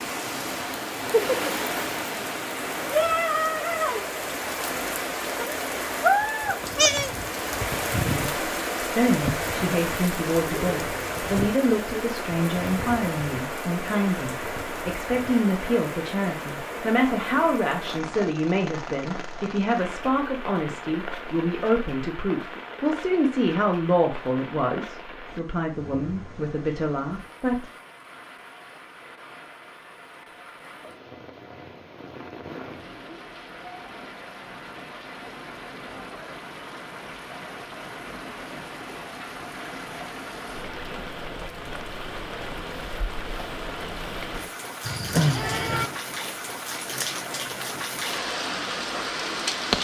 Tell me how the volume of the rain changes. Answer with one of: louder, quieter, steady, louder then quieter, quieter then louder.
quieter then louder.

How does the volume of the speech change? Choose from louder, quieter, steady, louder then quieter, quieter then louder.
steady.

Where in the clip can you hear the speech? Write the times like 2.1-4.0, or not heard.
8.0-27.6.